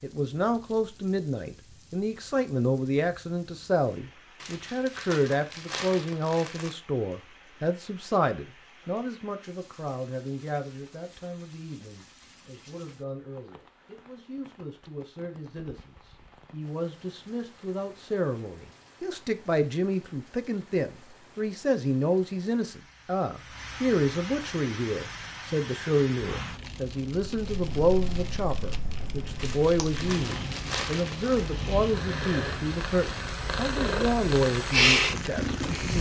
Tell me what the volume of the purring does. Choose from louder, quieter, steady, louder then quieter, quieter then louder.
louder.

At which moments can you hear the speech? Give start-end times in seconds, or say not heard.
0.0-35.9.